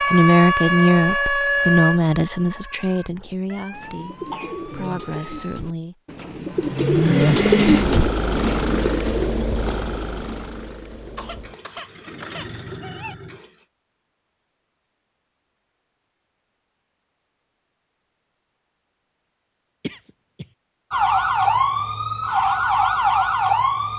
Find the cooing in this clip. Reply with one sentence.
The cooing can be heard from 3.7 to 9.4 s.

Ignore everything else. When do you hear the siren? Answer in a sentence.
The siren can be heard from 0.0 to 5.6 s and from 20.9 to 23.9 s.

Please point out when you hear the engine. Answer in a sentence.
You can hear the engine from 6.7 to 13.7 s.